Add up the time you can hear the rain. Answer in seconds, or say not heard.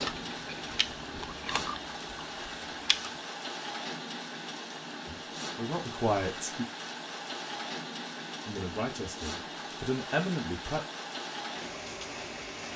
13 s.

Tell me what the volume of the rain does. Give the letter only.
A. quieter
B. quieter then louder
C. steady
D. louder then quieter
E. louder
C.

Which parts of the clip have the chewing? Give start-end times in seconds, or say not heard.
0.0-3.2.